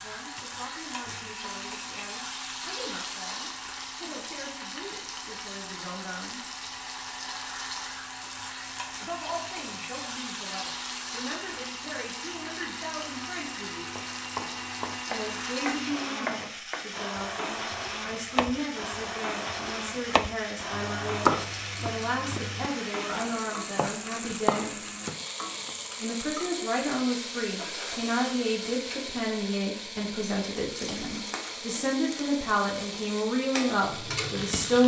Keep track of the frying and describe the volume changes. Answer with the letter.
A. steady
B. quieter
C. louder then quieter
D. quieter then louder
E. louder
A.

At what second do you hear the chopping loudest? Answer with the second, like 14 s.
21 s.